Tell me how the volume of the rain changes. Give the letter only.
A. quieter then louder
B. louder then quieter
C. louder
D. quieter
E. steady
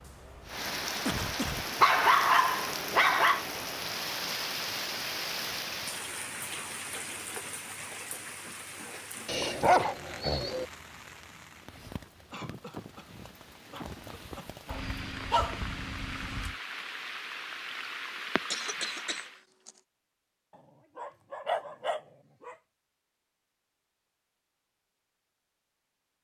A.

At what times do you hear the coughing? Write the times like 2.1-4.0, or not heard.
1.1-1.8, 12.3-14.8, 18.5-19.8.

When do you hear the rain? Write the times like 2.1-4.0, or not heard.
0.0-19.4.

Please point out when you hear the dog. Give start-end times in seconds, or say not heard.
1.8-3.5, 9.2-10.7, 14.7-16.6, 20.9-22.6.